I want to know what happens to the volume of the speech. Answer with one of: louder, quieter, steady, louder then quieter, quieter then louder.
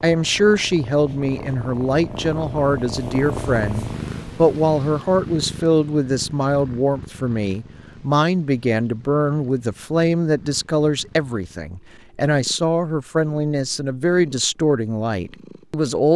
steady.